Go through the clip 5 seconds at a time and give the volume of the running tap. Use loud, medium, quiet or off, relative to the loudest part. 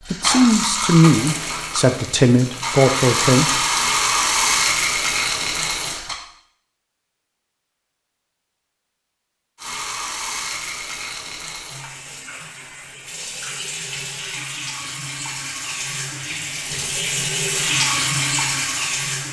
loud, loud, medium, loud.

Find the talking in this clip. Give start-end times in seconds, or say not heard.
0.1-3.6.